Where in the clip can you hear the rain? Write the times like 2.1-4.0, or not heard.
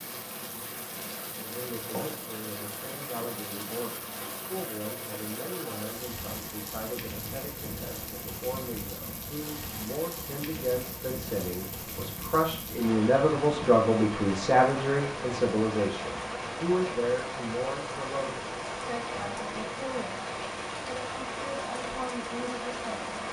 0.0-23.2.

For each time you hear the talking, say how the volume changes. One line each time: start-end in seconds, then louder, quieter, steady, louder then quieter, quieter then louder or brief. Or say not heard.
1.4-23.2 louder then quieter.